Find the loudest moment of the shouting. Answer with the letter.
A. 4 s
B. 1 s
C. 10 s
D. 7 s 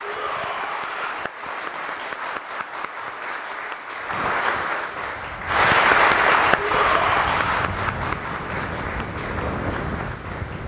D.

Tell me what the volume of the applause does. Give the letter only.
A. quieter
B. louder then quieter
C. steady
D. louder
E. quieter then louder
B.